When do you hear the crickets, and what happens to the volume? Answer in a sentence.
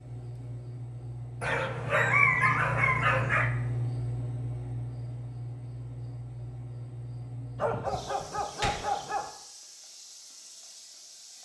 You can hear the crickets from 0.0 to 11.4 s, getting louder then quieter.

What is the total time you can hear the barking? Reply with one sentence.
The barking can be heard for 4 seconds in total.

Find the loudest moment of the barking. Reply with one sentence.
The loudest moment of the barking is at 2 seconds.